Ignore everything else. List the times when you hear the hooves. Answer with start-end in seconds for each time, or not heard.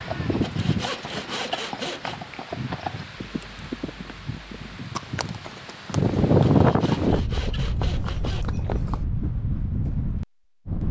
0.0-9.1.